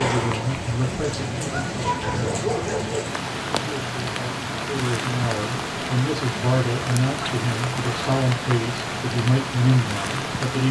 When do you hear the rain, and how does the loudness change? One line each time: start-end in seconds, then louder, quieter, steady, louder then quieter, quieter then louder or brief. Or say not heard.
0.0-10.6 steady.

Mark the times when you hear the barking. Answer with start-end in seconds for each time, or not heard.
1.5-3.0.